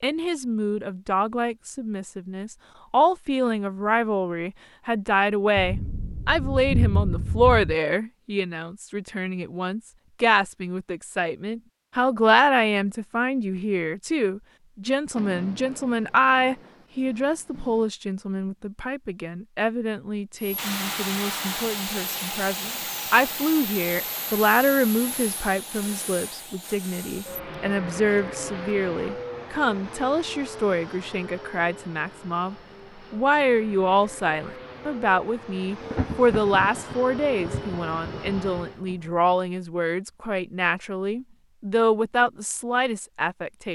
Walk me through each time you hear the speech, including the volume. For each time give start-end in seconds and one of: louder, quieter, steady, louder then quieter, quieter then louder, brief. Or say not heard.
0.0-43.6 steady.